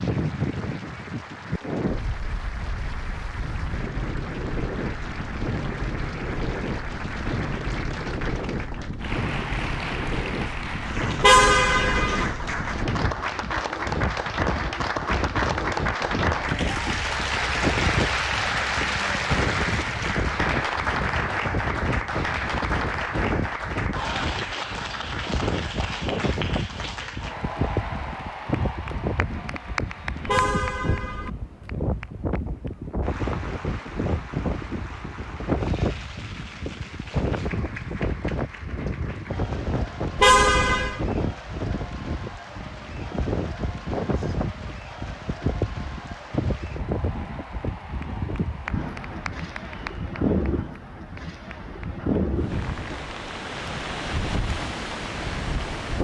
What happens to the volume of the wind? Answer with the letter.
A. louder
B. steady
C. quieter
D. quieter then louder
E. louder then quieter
B.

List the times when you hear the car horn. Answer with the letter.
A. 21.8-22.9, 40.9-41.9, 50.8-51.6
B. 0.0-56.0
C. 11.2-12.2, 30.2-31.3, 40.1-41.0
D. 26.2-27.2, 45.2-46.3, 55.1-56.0
C.